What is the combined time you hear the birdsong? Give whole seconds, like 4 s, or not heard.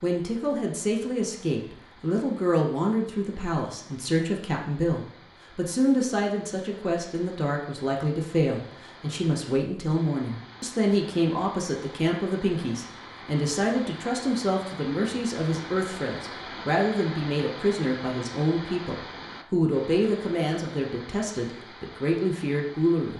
not heard.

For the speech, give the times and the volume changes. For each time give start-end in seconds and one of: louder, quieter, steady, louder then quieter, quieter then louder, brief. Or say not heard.
0.0-23.1 steady.